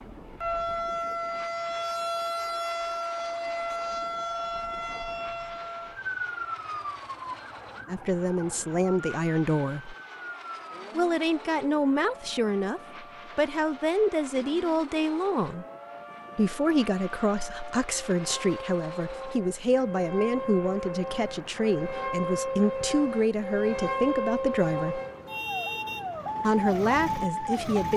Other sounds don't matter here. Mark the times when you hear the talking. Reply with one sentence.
The talking can be heard from 7.8 to 9.9 s, from 10.9 to 15.7 s, from 16.4 to 25.0 s and from 26.4 to 27.9 s.